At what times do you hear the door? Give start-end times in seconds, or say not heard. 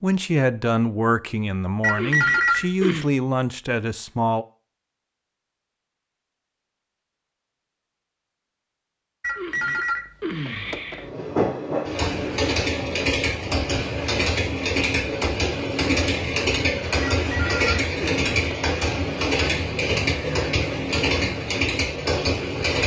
not heard.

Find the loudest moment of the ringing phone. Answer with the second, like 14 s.
2 s.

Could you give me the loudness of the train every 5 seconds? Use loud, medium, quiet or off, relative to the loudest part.
off, off, loud, loud, loud.